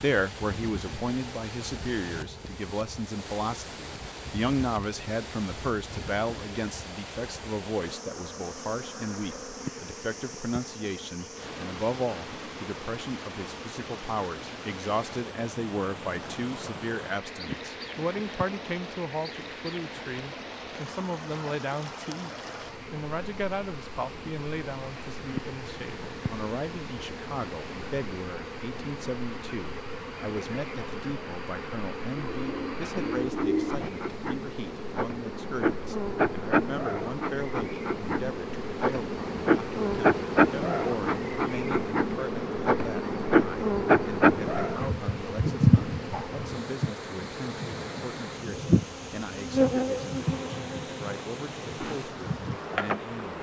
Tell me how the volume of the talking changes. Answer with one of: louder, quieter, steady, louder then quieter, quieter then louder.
quieter.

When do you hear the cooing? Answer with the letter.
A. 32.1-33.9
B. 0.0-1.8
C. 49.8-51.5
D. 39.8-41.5
A.